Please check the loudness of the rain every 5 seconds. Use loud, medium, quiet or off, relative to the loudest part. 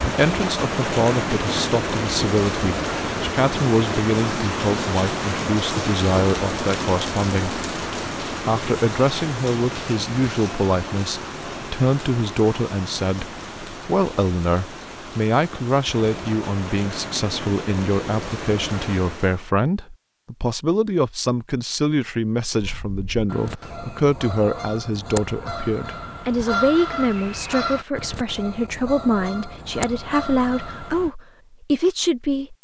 loud, loud, medium, medium, off, off, off.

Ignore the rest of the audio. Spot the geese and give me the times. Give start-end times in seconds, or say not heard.
22.6-31.1.